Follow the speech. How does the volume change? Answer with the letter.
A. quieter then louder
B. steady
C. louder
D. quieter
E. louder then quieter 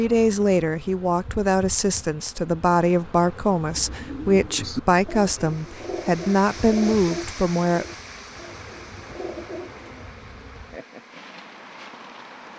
B.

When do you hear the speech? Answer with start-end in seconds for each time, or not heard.
0.0-7.8.